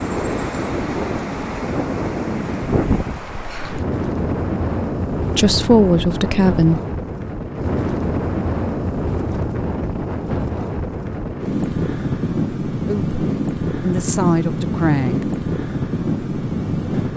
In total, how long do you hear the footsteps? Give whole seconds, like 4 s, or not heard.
not heard.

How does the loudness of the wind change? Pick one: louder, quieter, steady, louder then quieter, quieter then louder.
steady.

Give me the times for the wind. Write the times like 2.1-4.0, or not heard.
0.0-17.1.